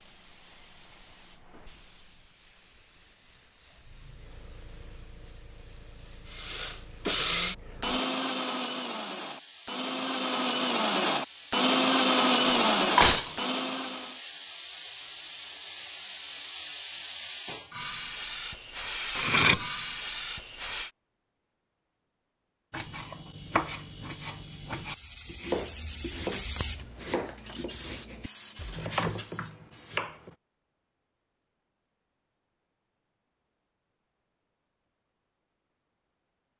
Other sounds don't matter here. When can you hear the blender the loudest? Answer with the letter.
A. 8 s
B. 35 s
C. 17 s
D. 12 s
D.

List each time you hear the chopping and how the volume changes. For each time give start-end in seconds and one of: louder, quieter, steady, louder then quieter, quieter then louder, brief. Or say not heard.
22.7-30.4 quieter then louder.